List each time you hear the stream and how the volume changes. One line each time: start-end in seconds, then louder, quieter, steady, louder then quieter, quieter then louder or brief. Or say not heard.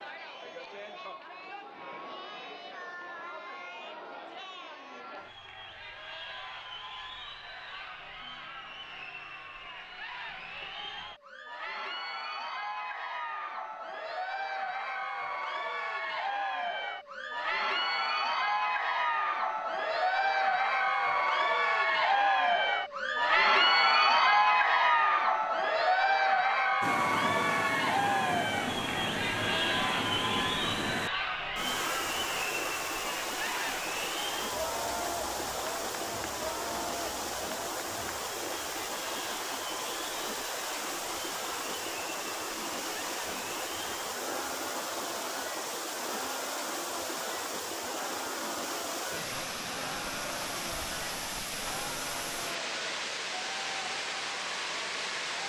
26.8-55.4 steady.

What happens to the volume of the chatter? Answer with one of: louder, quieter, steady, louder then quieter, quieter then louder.
louder then quieter.